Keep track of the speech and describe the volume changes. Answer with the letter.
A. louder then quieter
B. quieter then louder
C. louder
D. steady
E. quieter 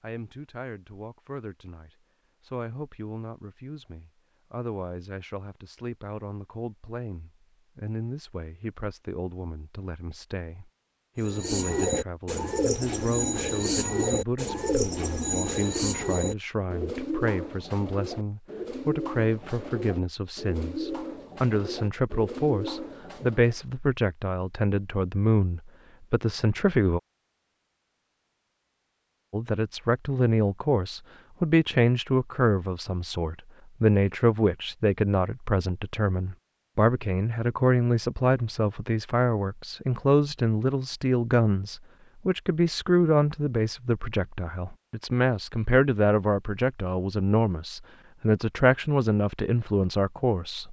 C.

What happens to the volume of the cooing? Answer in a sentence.
The loudness of the cooing goes down.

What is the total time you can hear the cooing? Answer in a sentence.
The cooing can be heard for 12 seconds in total.